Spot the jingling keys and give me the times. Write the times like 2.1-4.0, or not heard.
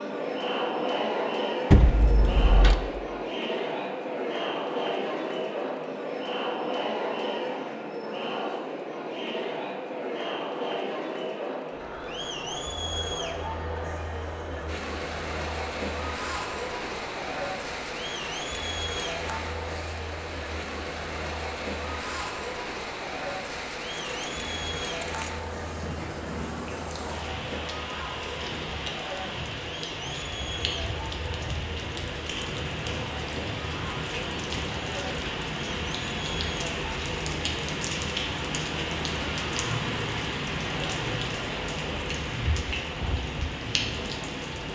1.7-2.8, 23.9-25.3.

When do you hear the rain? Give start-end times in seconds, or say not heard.
14.7-44.7.